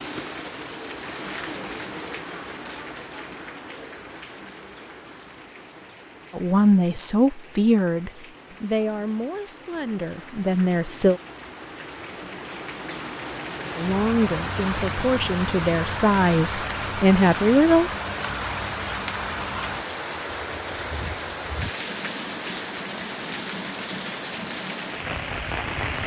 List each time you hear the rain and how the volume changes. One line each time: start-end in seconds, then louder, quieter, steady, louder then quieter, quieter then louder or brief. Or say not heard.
0.0-26.0 quieter then louder.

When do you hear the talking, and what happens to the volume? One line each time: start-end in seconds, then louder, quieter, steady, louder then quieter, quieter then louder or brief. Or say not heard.
6.3-11.2 quieter then louder
13.8-17.9 louder.